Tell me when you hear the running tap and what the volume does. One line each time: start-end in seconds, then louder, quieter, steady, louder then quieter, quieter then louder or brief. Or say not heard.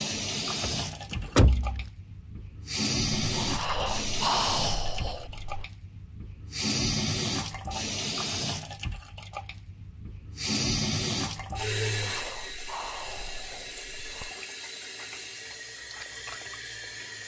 0.0-17.2 quieter.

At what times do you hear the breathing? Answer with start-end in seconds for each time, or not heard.
3.2-5.7, 11.8-14.3.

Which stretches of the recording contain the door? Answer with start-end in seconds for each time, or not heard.
0.6-1.9.